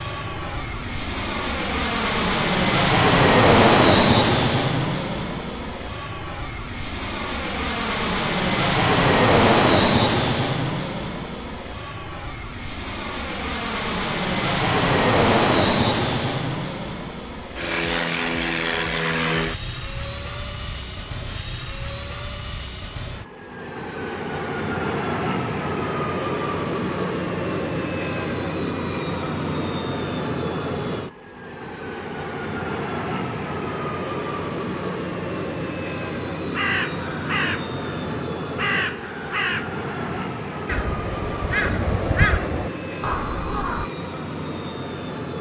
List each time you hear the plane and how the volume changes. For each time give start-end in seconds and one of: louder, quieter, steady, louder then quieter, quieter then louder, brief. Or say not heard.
0.0-45.3 quieter.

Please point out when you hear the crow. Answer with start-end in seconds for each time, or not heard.
36.5-43.9.